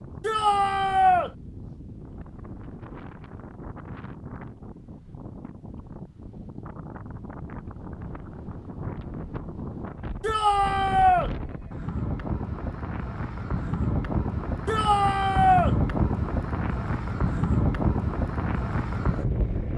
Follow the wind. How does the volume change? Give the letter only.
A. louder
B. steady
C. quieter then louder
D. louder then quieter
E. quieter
A.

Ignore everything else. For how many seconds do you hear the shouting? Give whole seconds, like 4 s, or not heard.
3 s.